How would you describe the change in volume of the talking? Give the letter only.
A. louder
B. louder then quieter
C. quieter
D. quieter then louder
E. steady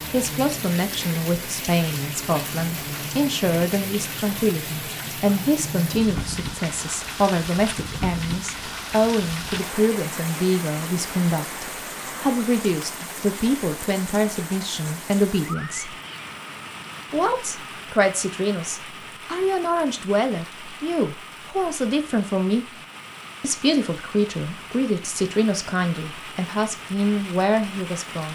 E.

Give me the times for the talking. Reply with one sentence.
You can hear the talking from 0.1 to 15.9 s, from 17.1 to 22.8 s and from 23.4 to 28.3 s.